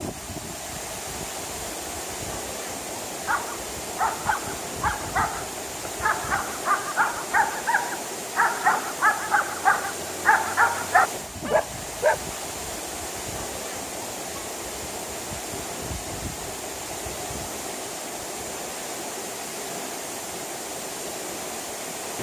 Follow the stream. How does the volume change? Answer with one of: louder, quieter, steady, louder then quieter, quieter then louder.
steady.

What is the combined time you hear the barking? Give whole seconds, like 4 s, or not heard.
9 s.